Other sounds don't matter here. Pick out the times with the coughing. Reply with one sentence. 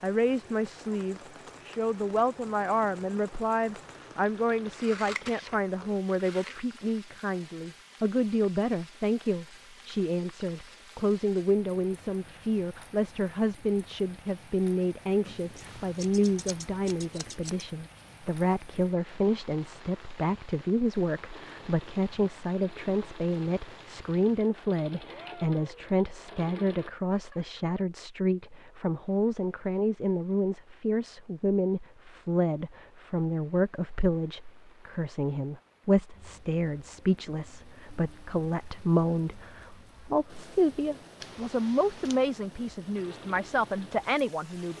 The coughing can't be heard in this clip.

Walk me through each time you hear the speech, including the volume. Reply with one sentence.
The speech can be heard from 0.0 to 44.7 s, at a steady volume.